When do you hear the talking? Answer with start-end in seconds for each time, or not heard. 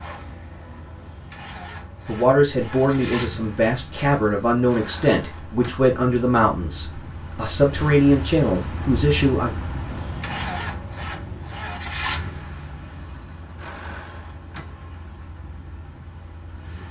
2.0-9.5.